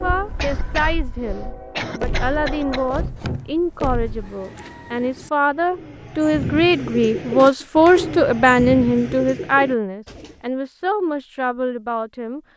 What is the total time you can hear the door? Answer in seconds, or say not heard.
2 s.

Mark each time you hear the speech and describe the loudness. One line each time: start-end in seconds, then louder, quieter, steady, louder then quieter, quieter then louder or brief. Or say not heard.
0.0-12.4 louder then quieter.